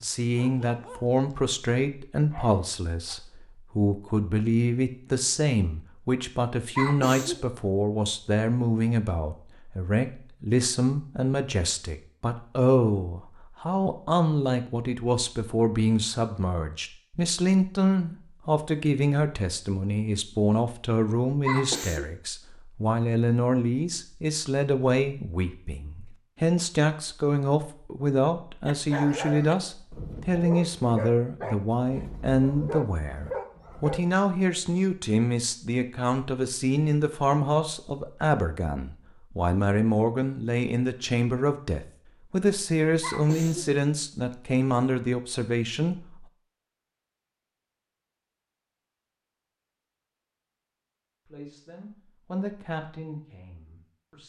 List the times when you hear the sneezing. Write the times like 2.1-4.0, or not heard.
6.8-7.4, 21.4-22.1, 43.0-43.8.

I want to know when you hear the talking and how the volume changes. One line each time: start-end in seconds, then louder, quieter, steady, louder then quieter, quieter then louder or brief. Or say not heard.
0.0-46.0 steady
51.2-54.2 brief.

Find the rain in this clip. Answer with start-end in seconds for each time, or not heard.
not heard.